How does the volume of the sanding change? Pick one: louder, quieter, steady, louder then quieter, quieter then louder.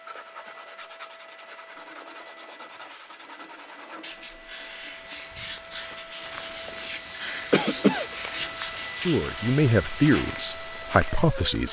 louder.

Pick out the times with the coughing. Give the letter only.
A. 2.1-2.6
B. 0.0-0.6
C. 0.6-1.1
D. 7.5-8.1
D.